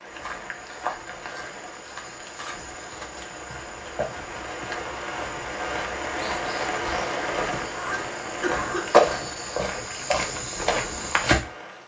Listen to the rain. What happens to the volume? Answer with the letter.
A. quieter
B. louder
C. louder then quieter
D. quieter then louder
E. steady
C.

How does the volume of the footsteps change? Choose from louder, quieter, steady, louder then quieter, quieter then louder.
louder.